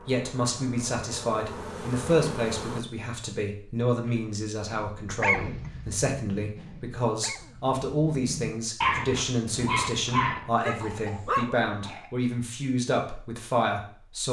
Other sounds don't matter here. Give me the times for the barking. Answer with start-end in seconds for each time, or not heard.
5.1-11.6.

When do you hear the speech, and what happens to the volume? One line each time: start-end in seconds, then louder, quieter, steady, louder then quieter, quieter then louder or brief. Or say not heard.
0.0-14.2 steady.